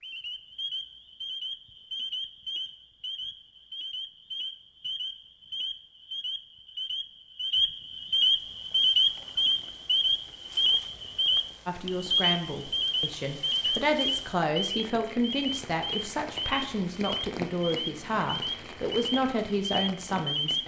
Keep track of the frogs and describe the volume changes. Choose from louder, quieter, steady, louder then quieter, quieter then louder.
louder then quieter.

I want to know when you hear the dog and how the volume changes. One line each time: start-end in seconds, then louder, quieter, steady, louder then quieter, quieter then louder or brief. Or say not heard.
not heard.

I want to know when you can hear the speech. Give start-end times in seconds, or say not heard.
11.7-20.6.